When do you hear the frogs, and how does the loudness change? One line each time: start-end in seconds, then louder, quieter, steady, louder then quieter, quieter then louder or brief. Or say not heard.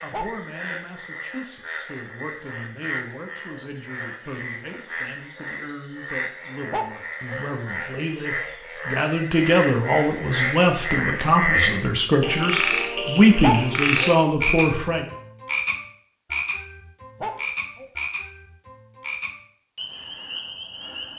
0.0-21.1 louder then quieter.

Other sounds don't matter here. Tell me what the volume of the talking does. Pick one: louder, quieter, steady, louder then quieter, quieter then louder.
louder.